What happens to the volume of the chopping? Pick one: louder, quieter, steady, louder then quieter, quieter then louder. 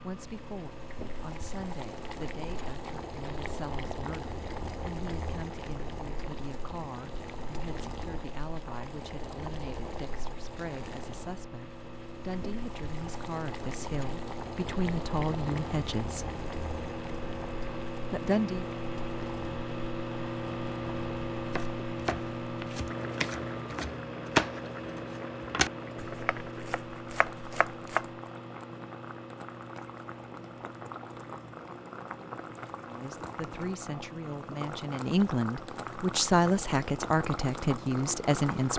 louder then quieter.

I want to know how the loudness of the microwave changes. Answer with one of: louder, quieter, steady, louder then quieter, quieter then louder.
louder then quieter.